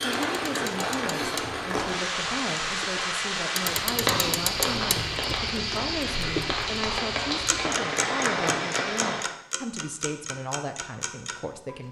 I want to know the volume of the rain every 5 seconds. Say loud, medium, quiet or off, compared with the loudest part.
loud, loud, off.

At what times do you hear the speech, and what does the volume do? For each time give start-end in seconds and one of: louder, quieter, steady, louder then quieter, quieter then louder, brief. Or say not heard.
0.0-11.8 steady.